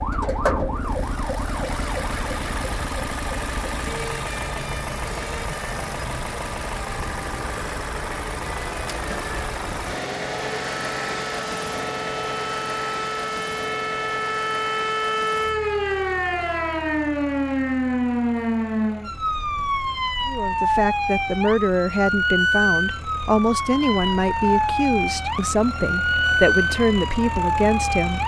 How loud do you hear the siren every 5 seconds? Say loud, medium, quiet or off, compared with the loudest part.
medium, quiet, medium, loud, loud, loud.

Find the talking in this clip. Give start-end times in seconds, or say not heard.
20.2-28.2.